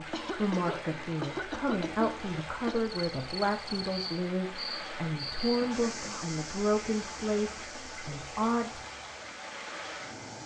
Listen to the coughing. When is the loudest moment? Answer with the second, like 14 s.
1 s.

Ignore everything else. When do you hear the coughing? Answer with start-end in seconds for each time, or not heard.
0.1-2.9, 5.6-6.3.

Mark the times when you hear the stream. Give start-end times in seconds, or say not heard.
0.0-10.4.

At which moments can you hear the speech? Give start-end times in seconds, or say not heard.
0.0-8.8.